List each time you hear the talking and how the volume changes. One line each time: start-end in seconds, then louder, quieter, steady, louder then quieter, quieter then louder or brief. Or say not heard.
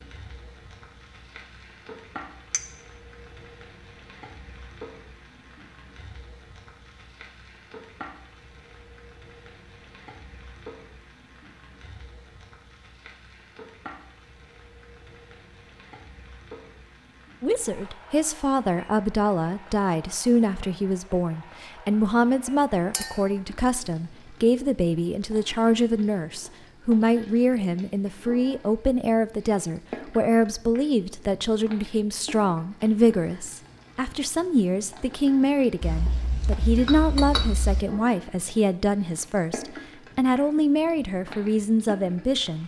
17.4-42.6 steady.